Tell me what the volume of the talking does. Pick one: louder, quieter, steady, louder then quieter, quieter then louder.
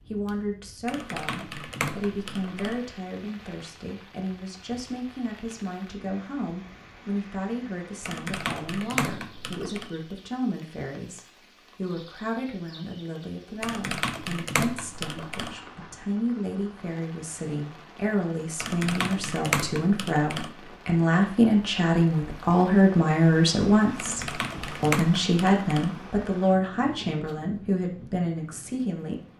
louder.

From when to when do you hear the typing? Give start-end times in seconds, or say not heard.
0.8-2.8, 8.0-9.9, 13.6-15.6, 18.6-20.6, 23.9-25.9.